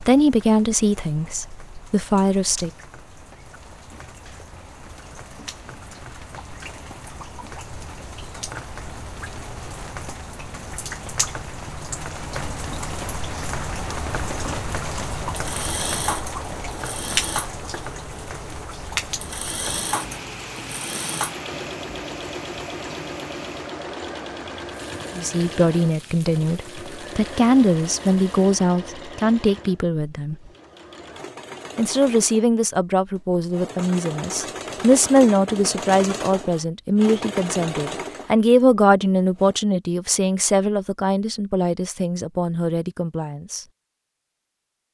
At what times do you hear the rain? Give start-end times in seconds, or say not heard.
0.0-28.6.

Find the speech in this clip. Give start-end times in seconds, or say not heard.
0.0-2.7, 25.1-30.4, 31.8-43.6.